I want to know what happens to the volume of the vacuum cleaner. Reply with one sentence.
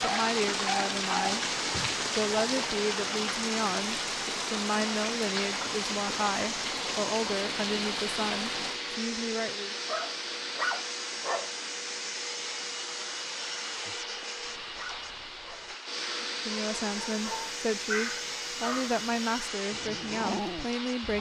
The loudness of the vacuum cleaner stays about the same.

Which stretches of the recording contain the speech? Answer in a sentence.
The speech can be heard from 0.0 to 1.4 s, from 2.1 to 9.8 s and from 16.2 to 21.1 s.